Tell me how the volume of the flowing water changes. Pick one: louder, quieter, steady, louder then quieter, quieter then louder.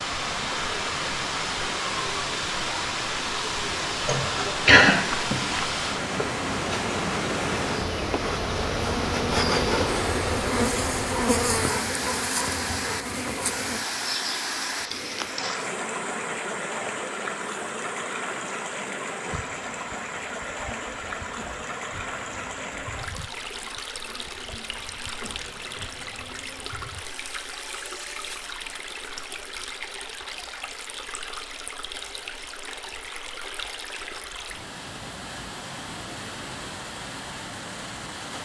quieter.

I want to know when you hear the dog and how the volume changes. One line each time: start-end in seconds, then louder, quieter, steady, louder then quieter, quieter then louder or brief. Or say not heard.
not heard.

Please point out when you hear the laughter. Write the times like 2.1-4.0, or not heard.
4.0-5.0.